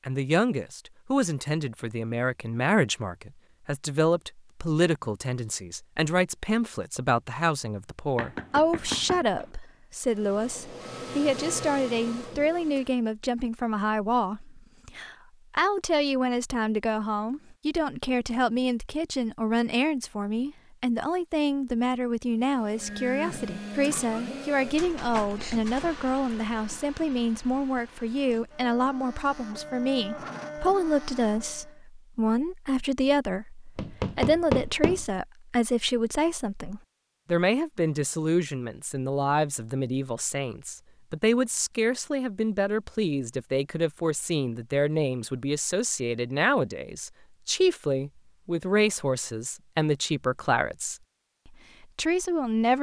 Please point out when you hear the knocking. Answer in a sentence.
You can hear the knocking from 8.2 to 9.5 s and from 33.8 to 35.0 s.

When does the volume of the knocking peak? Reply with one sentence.
The loudest moment of the knocking is at 34 seconds.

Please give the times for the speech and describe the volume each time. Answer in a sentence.
The speech can be heard from 0.1 to 52.7 s, at a steady volume.